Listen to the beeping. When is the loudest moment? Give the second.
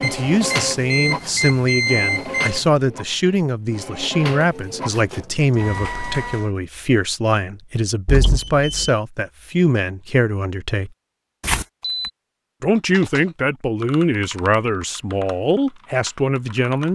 2 s.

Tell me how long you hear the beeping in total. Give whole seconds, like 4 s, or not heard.
4 s.